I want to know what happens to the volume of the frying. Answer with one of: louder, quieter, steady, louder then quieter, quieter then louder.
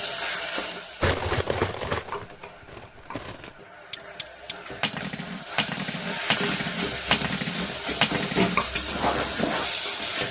quieter then louder.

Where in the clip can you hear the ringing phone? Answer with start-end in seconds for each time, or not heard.
not heard.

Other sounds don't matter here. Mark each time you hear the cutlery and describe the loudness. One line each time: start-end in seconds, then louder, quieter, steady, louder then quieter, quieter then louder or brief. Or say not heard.
1.0-9.7 quieter then louder.